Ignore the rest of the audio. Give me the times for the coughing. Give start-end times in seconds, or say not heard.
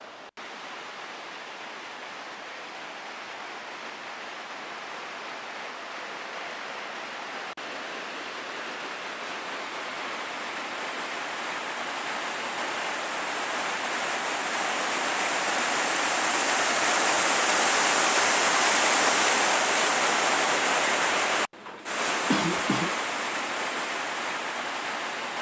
22.3-22.9.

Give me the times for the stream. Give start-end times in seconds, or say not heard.
0.0-25.3.